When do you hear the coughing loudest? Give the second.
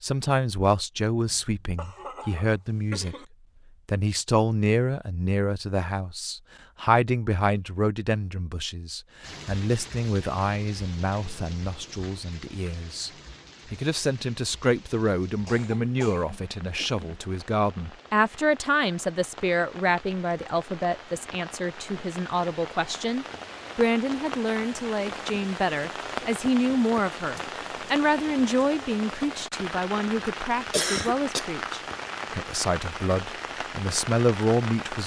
31 s.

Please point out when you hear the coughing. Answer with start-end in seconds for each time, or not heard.
1.2-3.2, 15.4-17.2, 30.7-31.4.